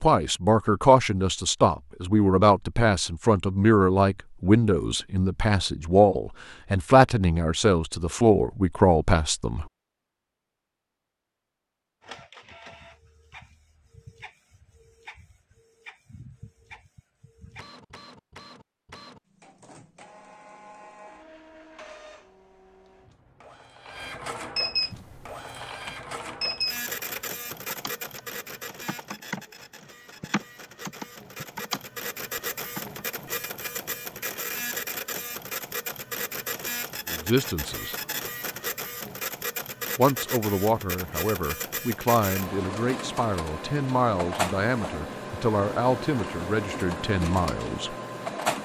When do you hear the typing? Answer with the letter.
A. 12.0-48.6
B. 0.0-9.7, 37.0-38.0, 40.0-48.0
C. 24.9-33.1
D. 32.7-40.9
C.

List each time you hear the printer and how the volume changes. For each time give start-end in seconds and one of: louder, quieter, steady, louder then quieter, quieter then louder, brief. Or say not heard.
12.0-48.6 louder.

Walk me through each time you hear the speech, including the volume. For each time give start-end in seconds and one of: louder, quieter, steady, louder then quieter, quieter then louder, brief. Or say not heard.
0.0-9.7 steady
37.0-38.0 brief
40.0-48.0 steady.